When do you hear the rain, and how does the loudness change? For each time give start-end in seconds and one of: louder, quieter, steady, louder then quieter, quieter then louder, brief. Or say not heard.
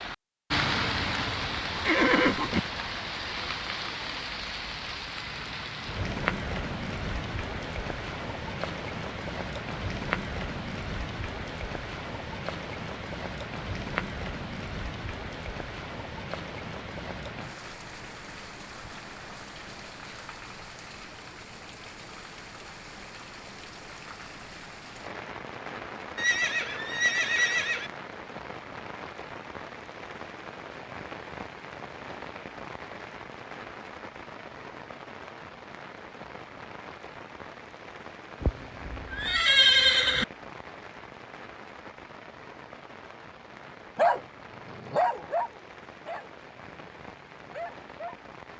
0.0-48.5 quieter.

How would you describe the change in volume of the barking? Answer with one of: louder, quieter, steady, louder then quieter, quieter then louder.
quieter then louder.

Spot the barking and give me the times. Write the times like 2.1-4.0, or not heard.
44.0-48.2.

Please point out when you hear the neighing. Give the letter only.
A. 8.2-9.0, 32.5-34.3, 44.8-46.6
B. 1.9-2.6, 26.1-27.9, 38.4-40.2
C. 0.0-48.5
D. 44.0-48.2
B.